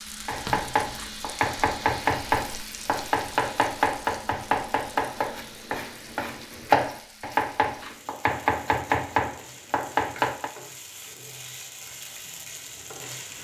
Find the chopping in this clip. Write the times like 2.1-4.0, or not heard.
0.2-10.5.